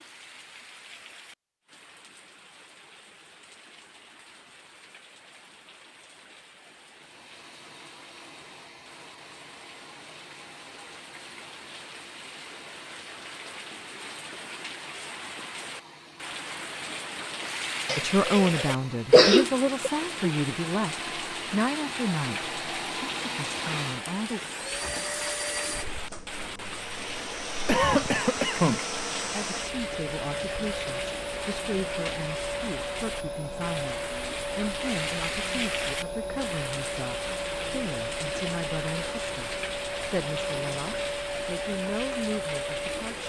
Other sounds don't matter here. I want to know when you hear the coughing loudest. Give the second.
19 s.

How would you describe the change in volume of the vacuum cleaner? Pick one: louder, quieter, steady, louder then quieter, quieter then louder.
louder.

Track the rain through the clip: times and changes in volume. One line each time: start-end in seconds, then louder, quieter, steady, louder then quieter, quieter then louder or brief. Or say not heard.
0.0-43.2 louder.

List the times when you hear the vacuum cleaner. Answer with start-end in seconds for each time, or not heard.
6.8-43.2.